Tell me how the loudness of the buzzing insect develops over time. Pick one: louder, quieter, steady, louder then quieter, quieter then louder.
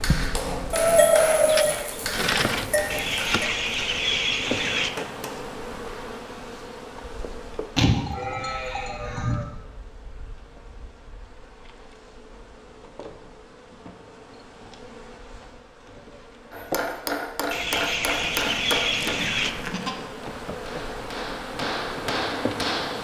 quieter then louder.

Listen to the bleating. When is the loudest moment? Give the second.
1 s.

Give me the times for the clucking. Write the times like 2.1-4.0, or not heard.
2.9-4.9, 17.5-19.5.